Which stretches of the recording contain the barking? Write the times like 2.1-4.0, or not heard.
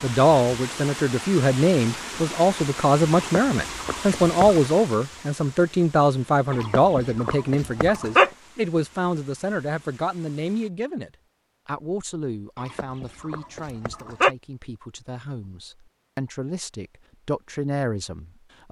3.1-4.7, 6.5-8.3, 12.6-14.3.